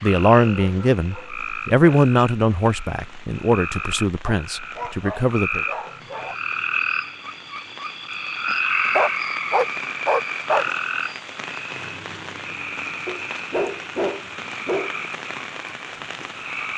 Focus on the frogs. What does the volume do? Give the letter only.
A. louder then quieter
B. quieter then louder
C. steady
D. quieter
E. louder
A.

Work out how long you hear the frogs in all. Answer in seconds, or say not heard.
17 s.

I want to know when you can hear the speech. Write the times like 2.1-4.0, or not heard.
0.0-5.7.